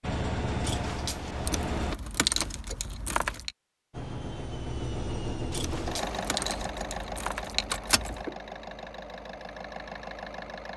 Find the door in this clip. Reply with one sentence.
You can hear the door from 0.6 to 1.6 s and from 5.5 to 6.7 s.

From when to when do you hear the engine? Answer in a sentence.
You can hear the engine from 0.0 to 1.9 s and from 3.9 to 10.7 s.